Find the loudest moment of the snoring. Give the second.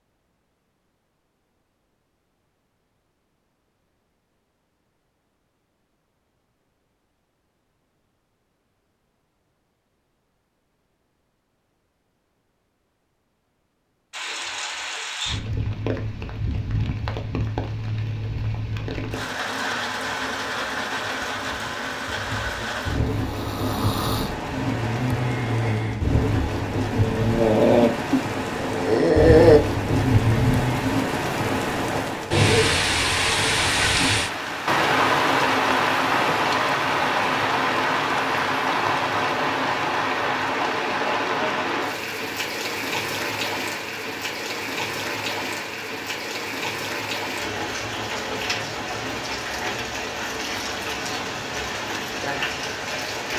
29 s.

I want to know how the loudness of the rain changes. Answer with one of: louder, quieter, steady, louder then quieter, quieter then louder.
louder then quieter.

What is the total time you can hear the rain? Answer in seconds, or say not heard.
39 s.